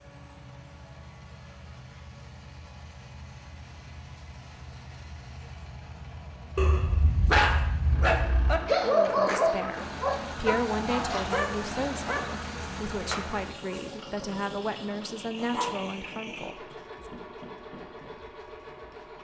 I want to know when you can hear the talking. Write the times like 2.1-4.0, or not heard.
8.8-17.1.